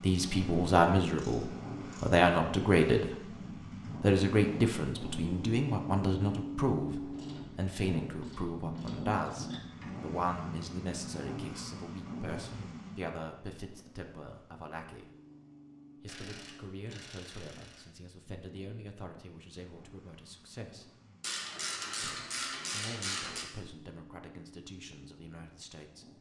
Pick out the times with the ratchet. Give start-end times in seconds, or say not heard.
1.1-2.2, 7.1-10.0, 16.1-17.9, 21.2-23.4.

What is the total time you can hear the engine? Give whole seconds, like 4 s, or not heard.
26 s.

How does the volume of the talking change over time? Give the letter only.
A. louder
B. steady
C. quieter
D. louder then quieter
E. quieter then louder
C.